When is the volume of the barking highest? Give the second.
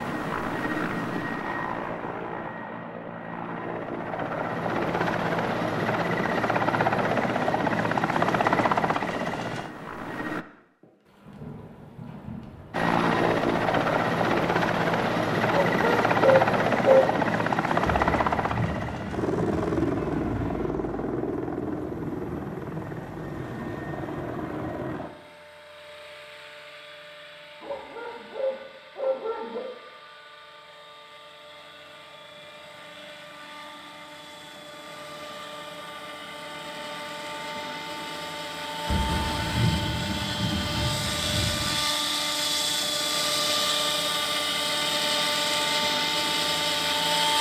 17 s.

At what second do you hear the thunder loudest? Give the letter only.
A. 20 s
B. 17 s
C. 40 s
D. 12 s
C.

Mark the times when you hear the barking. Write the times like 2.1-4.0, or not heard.
15.5-17.1, 27.6-29.6.